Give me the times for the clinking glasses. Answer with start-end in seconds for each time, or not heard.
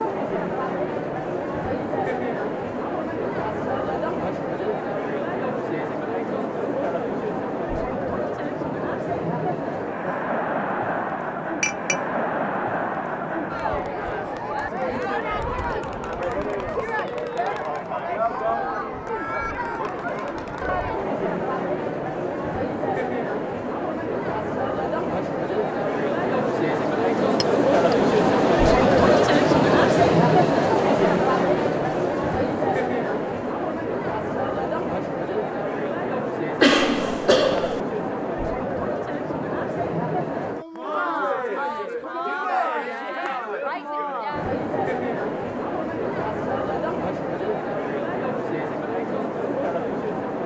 11.6-12.1, 27.4-27.9.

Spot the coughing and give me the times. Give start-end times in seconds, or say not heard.
36.6-37.8.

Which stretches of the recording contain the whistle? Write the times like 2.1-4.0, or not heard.
not heard.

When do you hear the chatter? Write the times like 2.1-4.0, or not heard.
0.0-50.4.